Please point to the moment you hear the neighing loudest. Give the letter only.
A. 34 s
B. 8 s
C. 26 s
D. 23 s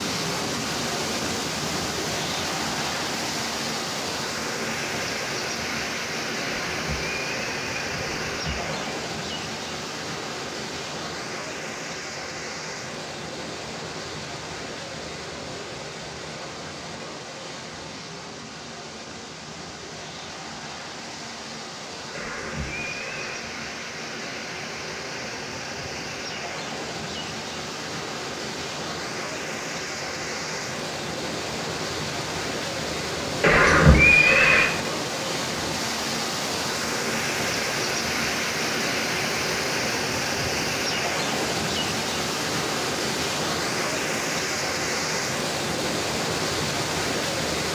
A.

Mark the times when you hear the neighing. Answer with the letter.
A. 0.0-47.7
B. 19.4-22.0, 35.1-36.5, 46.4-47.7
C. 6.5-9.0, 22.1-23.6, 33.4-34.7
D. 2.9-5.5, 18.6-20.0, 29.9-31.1
C.